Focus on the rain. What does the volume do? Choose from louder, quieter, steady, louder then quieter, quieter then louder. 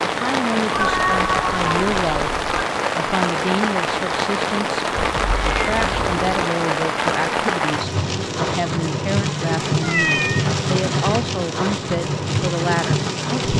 steady.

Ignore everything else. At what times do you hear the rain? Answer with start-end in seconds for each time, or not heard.
0.0-13.5.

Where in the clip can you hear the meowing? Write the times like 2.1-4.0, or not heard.
0.7-2.6, 5.0-6.5, 9.8-10.5.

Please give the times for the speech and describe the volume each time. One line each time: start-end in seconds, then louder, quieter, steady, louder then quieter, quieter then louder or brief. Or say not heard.
0.1-2.4 brief
3.0-13.5 steady.